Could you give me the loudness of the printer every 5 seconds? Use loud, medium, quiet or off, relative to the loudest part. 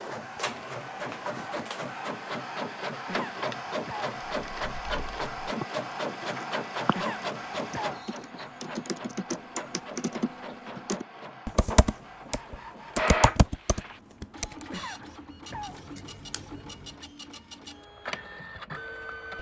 loud, loud, loud, medium.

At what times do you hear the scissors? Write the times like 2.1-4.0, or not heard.
15.5-17.0.